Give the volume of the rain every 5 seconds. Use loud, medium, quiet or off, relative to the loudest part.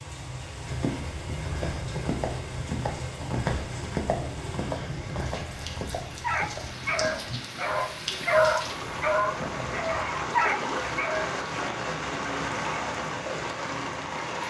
medium, medium, loud.